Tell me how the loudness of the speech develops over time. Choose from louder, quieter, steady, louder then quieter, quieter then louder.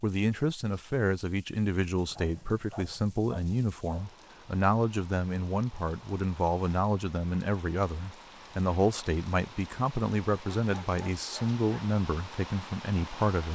steady.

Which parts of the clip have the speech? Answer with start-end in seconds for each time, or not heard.
0.0-13.5.